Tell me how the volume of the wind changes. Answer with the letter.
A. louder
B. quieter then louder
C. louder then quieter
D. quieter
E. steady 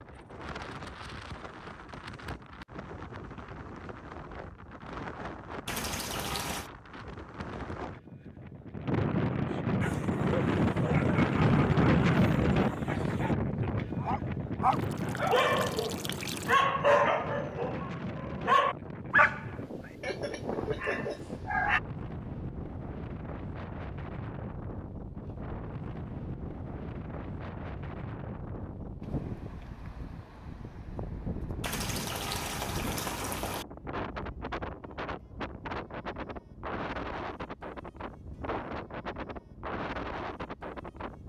C.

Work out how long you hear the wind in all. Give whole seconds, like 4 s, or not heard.
41 s.